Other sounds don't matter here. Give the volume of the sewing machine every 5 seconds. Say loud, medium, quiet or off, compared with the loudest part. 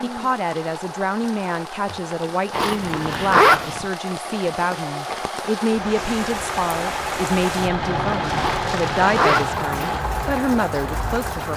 medium, loud, loud.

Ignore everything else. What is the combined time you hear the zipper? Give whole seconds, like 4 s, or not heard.
3 s.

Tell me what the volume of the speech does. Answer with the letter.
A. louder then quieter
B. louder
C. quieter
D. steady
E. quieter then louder
D.